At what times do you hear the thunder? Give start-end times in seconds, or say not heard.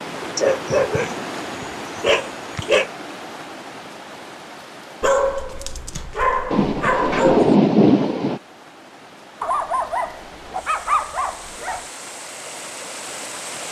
6.5-8.4.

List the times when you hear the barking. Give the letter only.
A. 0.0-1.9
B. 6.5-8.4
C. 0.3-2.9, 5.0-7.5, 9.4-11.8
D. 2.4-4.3
C.